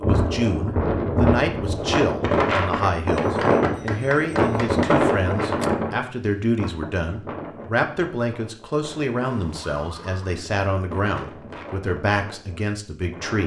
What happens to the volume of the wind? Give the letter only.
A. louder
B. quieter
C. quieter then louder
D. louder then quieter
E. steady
C.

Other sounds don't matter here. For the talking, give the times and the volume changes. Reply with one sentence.
The talking can be heard from 0.0 to 13.4 s, at a steady volume.